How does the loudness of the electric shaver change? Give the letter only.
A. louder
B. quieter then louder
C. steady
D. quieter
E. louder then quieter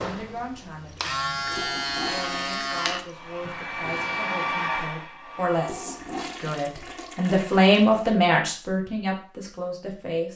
E.